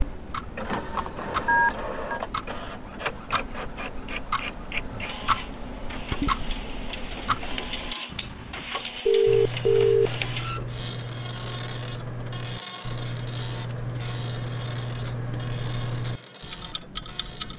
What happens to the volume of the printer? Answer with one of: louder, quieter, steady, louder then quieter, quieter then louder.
quieter.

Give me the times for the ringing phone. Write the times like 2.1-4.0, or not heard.
1.4-2.2, 9.1-10.2.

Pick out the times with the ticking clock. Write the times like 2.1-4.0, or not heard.
0.0-17.5.